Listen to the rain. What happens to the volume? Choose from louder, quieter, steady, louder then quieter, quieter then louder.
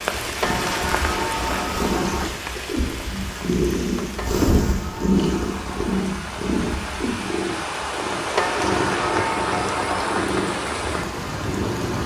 quieter then louder.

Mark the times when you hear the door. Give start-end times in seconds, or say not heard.
0.4-2.4, 4.2-5.9, 8.3-10.3.